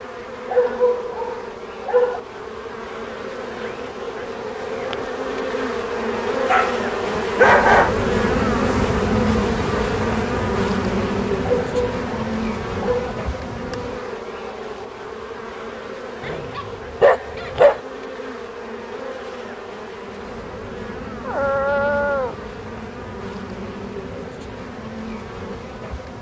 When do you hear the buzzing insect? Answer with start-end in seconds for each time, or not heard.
0.0-26.1.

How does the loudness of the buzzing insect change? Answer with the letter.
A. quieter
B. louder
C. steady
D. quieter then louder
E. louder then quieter
E.